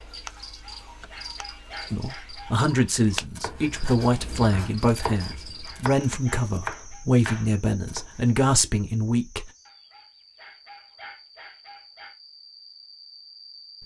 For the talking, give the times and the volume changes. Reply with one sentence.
The talking can be heard from 1.9 to 9.5 s, at a steady volume.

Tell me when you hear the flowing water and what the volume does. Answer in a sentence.
The flowing water can't be heard in this clip.